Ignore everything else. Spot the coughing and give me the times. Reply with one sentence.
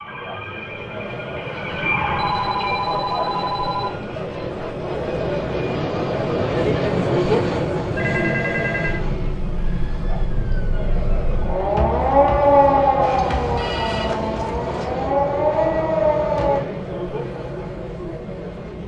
You can't hear the coughing here.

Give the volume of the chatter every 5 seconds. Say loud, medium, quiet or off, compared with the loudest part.
medium, loud, medium, medium.